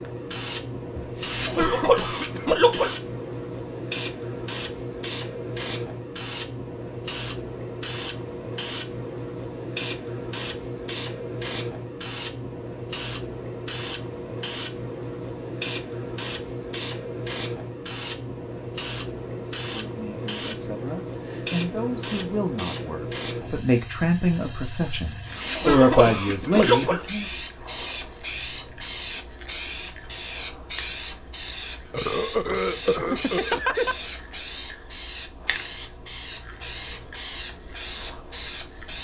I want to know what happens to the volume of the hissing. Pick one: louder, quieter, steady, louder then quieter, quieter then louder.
steady.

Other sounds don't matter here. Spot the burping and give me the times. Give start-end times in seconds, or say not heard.
31.9-34.0.